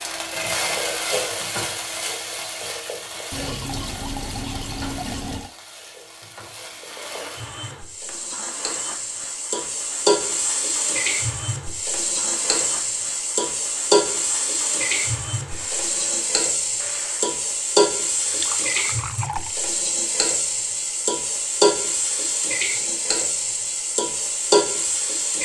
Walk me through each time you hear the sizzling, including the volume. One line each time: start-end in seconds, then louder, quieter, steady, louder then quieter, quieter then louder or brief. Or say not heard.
0.0-25.4 louder.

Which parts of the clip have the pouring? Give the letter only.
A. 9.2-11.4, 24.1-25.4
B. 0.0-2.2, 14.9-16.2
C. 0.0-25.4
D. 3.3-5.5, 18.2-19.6
D.